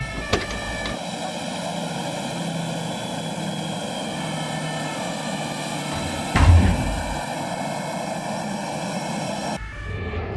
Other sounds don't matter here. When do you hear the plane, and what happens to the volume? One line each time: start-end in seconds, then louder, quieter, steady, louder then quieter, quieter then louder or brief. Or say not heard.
0.0-10.3 steady.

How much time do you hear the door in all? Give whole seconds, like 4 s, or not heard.
2 s.